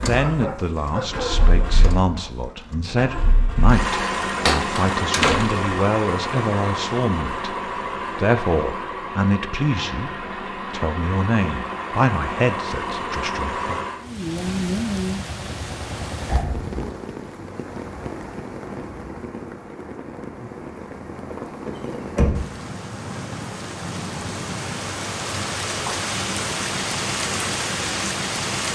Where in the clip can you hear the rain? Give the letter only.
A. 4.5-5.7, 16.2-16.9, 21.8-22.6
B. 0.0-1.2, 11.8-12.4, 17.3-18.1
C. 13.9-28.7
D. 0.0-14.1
C.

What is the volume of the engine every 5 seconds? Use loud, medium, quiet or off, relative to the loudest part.
loud, loud, loud, off, off, off.